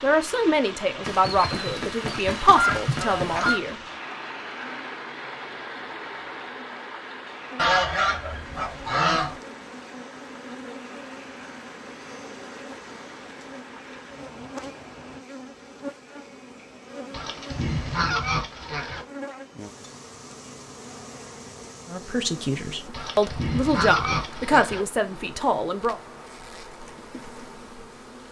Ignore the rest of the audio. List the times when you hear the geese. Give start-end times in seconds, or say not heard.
1.0-3.6, 7.5-9.4, 17.1-19.1, 22.9-24.9.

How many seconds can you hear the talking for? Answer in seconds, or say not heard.
8 s.